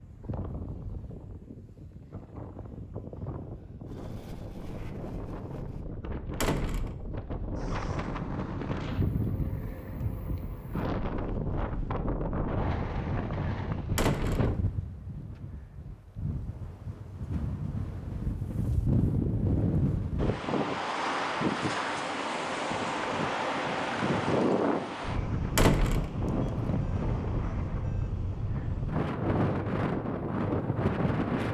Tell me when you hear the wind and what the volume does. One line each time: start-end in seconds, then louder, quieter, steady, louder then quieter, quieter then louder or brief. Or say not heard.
0.0-31.5 louder.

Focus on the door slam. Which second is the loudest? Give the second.
26 s.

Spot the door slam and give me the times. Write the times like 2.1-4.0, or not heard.
6.4-7.0, 13.9-14.6, 25.6-26.1.